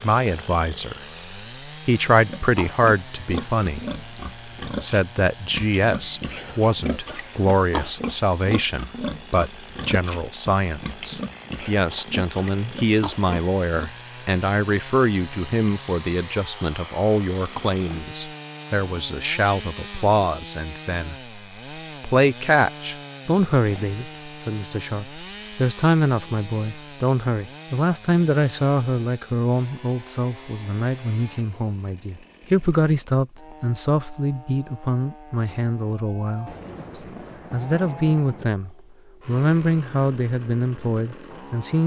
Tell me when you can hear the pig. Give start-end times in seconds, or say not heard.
2.1-13.9.